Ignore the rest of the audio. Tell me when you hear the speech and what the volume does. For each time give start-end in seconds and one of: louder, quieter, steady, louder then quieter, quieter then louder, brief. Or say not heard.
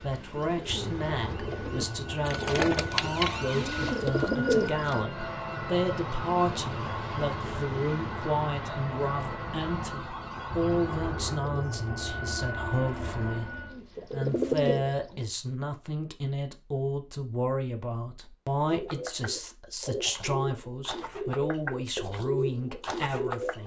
0.0-23.6 steady.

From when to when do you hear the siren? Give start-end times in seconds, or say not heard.
0.0-11.4.